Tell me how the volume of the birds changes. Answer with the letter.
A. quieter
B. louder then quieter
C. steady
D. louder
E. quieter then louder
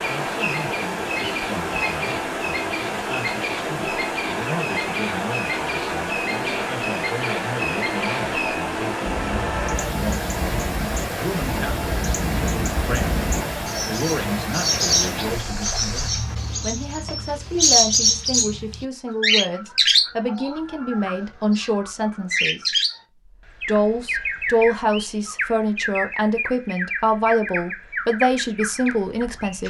B.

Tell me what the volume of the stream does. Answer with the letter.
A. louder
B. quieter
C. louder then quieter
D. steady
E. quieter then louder
D.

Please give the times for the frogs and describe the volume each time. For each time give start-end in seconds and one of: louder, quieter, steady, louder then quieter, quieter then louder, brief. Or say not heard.
not heard.